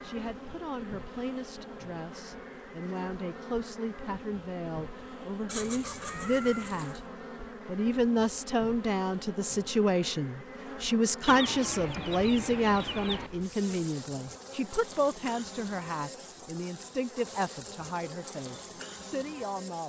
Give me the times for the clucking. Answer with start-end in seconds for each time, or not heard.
5.5-7.0, 11.2-13.3.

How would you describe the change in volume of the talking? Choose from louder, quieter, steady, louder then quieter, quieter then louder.
louder then quieter.